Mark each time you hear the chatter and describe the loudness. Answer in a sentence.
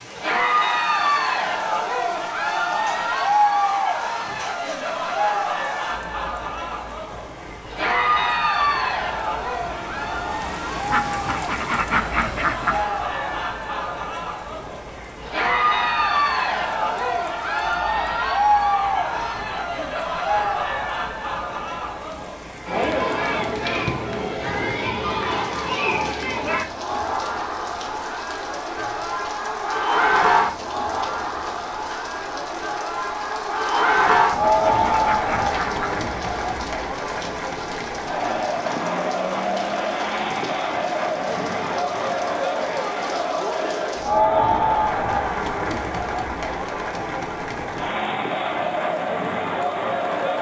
You can hear the chatter from 0.1 to 50.3 s, at a steady volume.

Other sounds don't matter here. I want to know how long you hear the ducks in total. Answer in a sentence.
The ducks can be heard for 4 seconds in total.